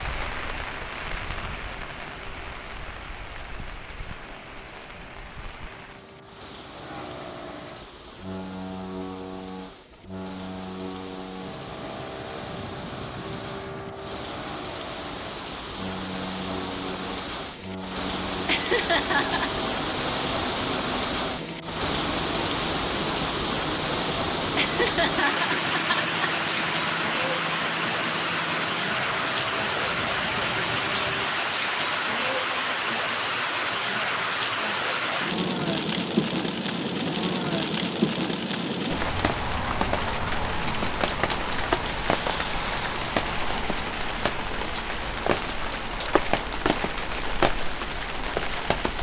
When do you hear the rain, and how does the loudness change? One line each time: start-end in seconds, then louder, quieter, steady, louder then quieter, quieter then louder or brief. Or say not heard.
0.0-48.9 louder.